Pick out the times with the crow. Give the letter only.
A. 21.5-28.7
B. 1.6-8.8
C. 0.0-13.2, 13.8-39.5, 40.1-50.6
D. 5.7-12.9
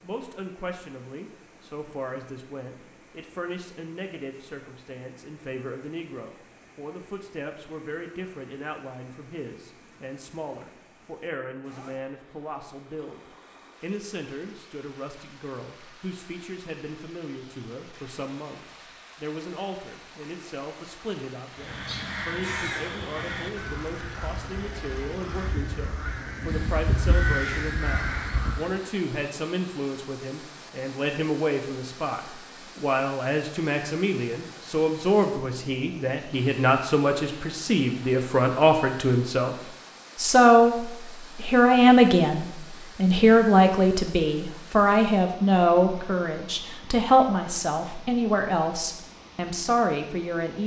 A.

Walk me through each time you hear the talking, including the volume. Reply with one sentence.
You can hear the talking from 0.0 to 13.2 s, at a steady volume; from 13.8 to 39.5 s, getting louder; and from 40.1 to 50.6 s, getting quieter.